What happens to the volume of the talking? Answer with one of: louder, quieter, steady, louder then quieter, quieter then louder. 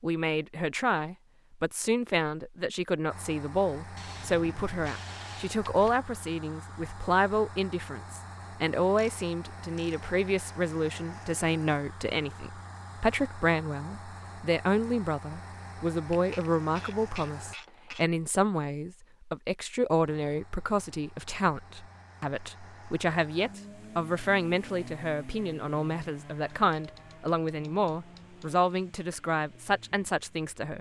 steady.